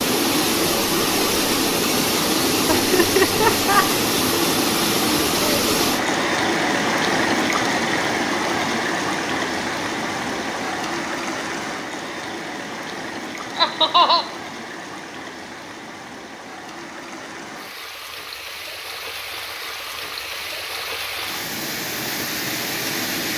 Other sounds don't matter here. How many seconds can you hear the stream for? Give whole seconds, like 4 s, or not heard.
23 s.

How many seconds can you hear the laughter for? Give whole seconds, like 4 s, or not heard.
2 s.